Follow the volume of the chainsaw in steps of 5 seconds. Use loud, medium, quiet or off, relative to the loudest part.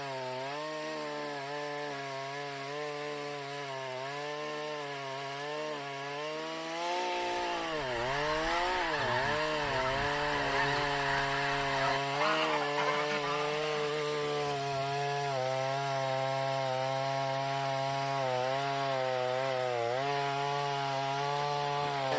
medium, loud, loud, loud, loud.